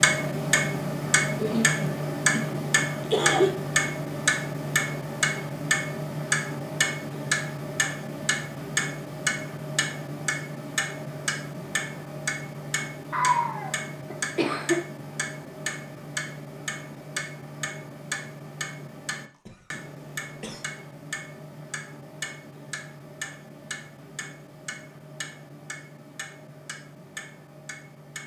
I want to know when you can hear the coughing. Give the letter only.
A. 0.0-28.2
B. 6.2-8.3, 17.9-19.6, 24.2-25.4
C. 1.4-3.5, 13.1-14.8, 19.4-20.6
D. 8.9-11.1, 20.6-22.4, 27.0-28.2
C.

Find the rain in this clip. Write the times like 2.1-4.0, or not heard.
not heard.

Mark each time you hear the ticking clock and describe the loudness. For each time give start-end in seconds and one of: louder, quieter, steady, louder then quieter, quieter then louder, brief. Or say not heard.
0.0-28.2 quieter.